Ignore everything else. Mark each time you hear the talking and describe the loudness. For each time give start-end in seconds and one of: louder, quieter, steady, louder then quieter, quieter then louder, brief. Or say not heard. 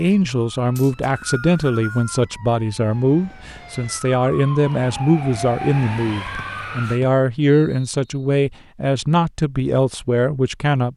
0.0-10.9 steady.